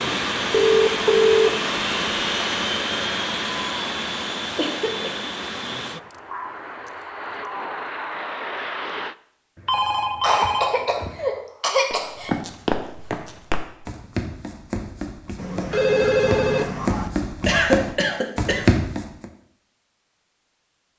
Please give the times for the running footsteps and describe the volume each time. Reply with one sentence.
You can hear the running footsteps from 11.9 to 19.2 s, getting quieter then louder.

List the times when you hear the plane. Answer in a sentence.
You can hear the plane from 0.0 to 9.2 s.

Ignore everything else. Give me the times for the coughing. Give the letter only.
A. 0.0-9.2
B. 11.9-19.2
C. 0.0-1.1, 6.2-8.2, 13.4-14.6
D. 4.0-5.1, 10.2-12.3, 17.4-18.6
D.